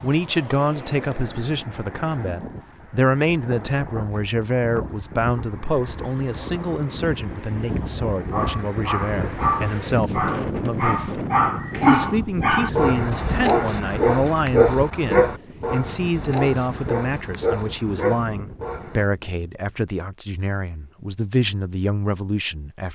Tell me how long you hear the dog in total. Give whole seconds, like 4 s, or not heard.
11 s.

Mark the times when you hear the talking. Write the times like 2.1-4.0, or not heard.
0.0-11.2, 11.8-22.9.